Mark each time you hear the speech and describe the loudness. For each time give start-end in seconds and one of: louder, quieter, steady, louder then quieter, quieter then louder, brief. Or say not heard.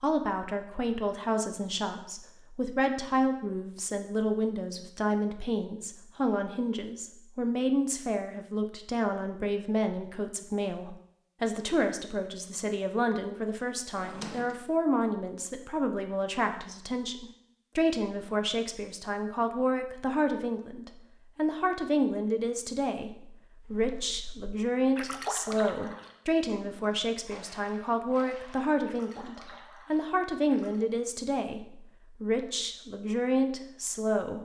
0.0-34.3 steady.